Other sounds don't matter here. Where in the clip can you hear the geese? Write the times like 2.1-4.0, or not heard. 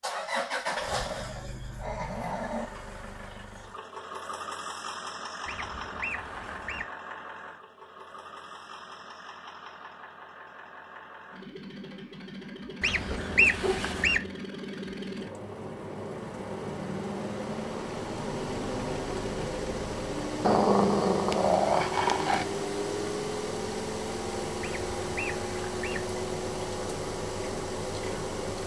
5.5-6.8, 12.8-14.2, 24.6-26.0.